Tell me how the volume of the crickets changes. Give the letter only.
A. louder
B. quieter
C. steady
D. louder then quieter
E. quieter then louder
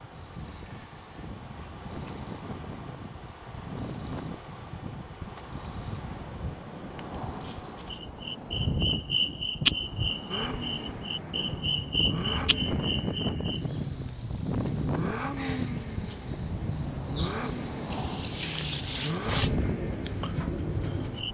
C.